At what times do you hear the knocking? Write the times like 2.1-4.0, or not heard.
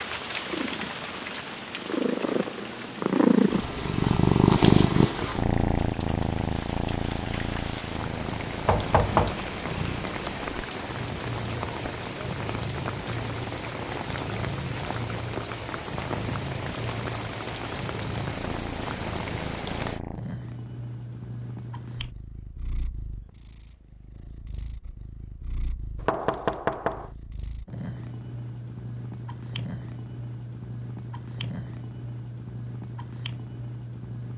8.7-9.3, 26.0-27.1.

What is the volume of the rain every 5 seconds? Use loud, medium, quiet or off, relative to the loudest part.
loud, loud, loud, loud, off, off, off.